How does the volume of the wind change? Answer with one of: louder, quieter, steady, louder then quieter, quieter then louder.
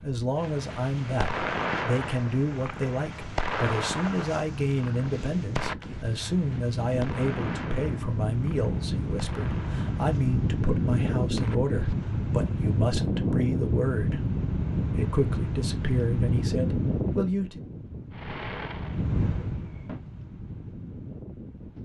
louder then quieter.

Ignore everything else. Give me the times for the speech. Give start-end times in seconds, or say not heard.
0.0-14.2, 14.9-17.6.